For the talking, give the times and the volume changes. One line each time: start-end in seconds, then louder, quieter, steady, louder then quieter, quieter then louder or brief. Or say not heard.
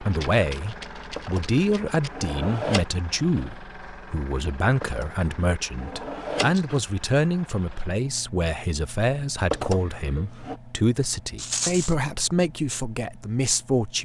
0.0-13.9 steady.